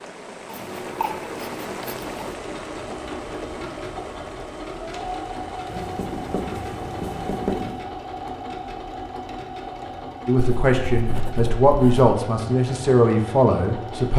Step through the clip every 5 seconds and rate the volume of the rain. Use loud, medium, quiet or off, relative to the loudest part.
loud, medium, off.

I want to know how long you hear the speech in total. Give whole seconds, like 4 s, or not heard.
4 s.